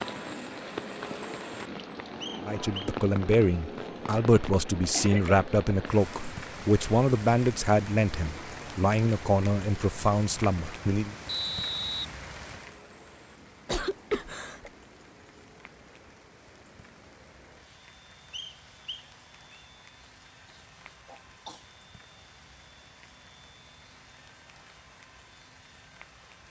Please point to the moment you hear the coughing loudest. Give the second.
14 s.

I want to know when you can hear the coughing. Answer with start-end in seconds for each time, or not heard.
4.3-5.4, 13.7-14.7, 20.4-21.6.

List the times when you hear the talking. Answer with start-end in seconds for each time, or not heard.
2.5-11.2.